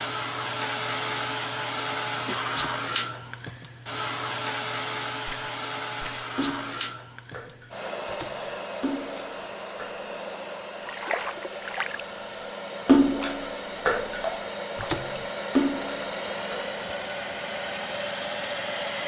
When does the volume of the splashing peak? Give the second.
13 s.